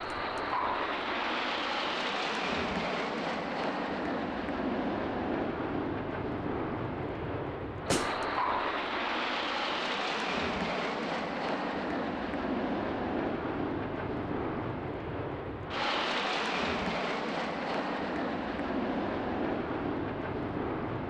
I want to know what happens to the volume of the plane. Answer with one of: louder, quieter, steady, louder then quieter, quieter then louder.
steady.